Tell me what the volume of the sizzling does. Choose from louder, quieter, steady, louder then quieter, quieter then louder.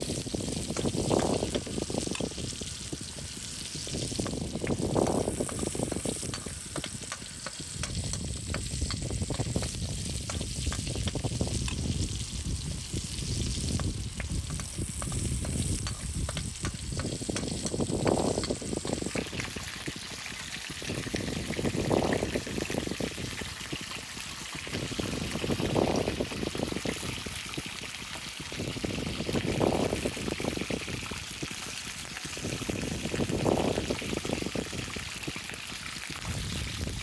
steady.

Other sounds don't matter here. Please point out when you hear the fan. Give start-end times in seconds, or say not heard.
0.0-36.9.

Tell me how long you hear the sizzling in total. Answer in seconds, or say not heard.
37 s.